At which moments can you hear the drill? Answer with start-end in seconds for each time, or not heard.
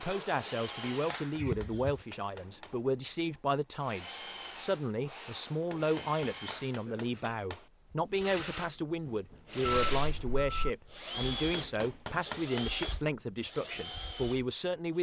0.0-14.9.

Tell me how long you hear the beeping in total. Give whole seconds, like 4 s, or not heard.
2 s.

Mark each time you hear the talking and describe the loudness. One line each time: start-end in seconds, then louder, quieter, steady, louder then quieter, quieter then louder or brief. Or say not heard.
0.0-14.9 steady.